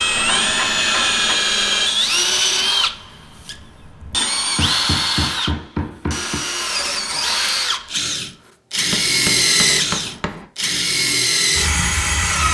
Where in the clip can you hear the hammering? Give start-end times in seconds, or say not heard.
0.1-1.4, 4.5-6.4, 8.9-10.4.